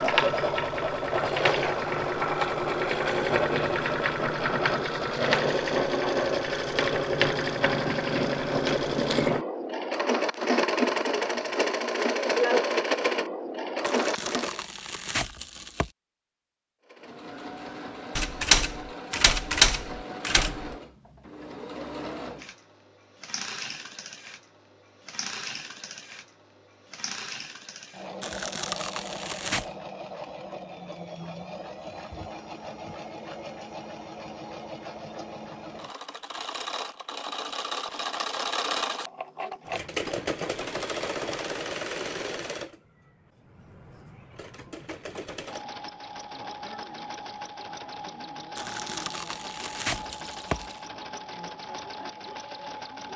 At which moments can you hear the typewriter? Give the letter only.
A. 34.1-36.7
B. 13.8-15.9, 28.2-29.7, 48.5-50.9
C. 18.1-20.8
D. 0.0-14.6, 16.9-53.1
C.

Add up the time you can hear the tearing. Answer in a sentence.
The tearing can be heard for 6 seconds in total.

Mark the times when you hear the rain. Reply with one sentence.
You can't hear the rain here.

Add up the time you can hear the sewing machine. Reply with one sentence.
The sewing machine can be heard for 51 seconds in total.